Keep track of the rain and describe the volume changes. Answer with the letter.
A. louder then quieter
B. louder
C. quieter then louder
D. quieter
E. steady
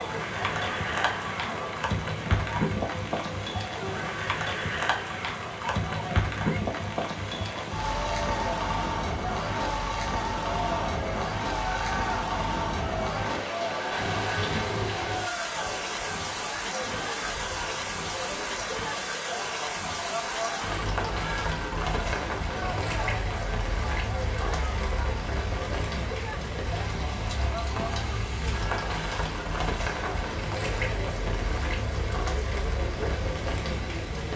E.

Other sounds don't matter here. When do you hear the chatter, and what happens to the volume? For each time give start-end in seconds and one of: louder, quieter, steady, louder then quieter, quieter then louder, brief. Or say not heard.
0.0-34.3 steady.